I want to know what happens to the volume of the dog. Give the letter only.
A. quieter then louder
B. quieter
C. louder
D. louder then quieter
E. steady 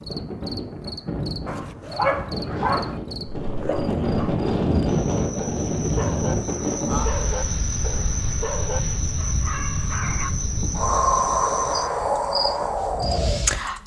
B.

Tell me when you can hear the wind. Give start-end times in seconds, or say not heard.
0.0-13.8.